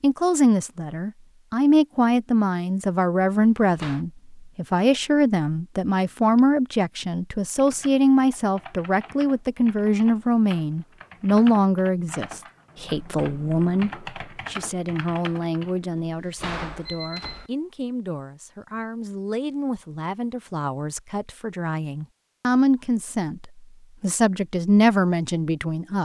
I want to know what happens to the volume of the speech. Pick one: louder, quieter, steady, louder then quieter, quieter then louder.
quieter then louder.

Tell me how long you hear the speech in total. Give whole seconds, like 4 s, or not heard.
26 s.